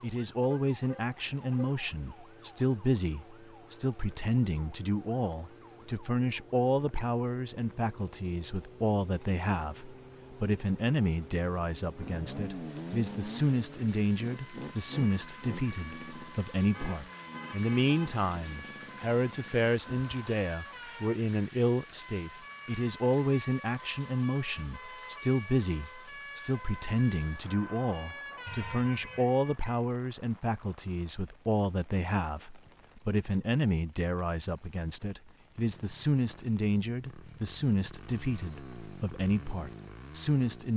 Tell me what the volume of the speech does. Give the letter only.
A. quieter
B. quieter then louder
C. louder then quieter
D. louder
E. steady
E.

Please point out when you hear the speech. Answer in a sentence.
The speech can be heard from 0.0 to 40.7 s.